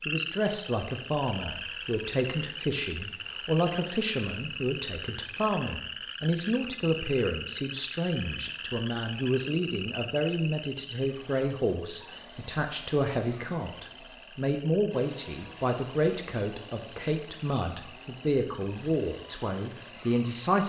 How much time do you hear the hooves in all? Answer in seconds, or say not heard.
not heard.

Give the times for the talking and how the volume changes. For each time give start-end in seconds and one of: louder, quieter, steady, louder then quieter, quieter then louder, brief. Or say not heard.
0.1-20.6 steady.